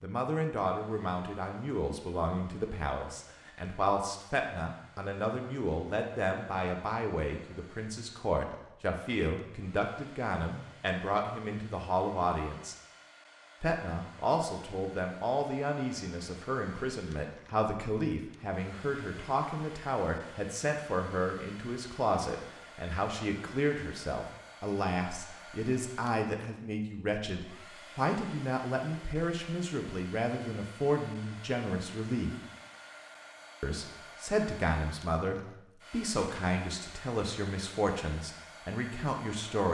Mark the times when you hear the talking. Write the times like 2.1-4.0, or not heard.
0.0-12.8, 13.6-32.4, 33.6-39.6.